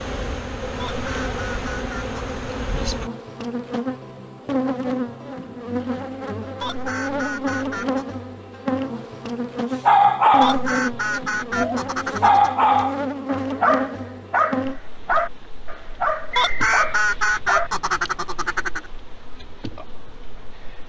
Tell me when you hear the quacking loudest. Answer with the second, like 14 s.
17 s.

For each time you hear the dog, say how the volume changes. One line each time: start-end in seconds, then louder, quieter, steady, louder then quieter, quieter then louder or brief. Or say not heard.
9.8-10.7 brief
11.6-18.1 quieter.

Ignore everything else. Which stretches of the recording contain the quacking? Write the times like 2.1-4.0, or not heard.
0.8-2.4, 6.6-8.2, 10.4-12.5, 16.4-18.9.